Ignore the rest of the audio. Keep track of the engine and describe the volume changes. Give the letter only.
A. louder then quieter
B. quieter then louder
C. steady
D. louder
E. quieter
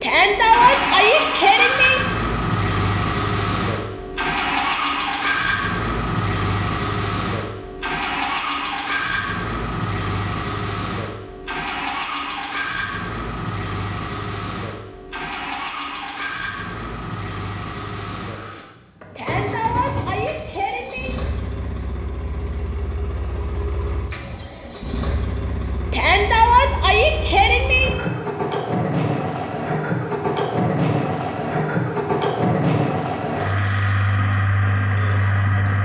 B.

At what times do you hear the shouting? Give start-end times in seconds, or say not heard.
0.0-2.0, 19.1-21.1, 25.9-27.9.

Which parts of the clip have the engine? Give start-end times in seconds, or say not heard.
0.0-35.8.